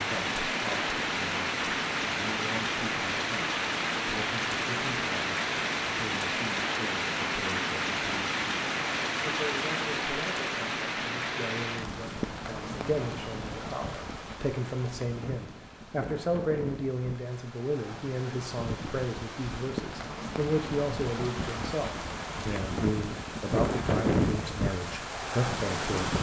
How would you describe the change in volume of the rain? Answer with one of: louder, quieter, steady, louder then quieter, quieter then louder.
quieter then louder.